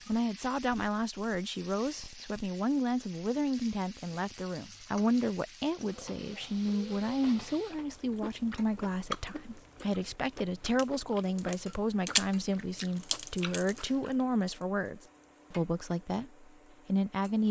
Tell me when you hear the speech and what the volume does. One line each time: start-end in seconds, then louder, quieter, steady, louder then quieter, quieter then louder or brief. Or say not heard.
0.1-17.4 steady.